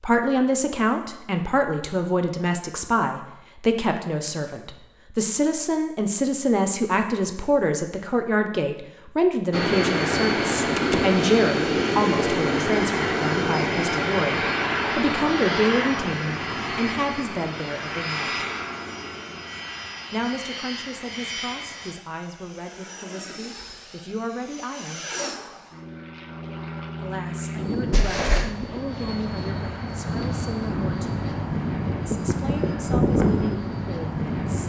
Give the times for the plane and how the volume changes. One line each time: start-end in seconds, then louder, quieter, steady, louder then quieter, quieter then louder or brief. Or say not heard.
9.5-34.6 quieter then louder.